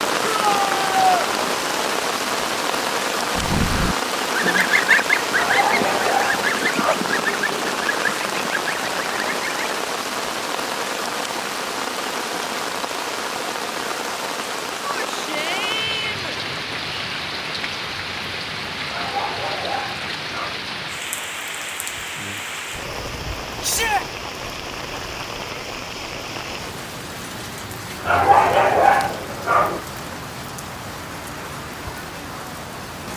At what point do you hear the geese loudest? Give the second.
5 s.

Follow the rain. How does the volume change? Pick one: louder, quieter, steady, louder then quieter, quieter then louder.
quieter.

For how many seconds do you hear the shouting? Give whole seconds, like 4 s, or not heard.
3 s.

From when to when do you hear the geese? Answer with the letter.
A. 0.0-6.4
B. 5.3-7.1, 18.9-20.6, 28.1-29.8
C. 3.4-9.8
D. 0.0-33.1
C.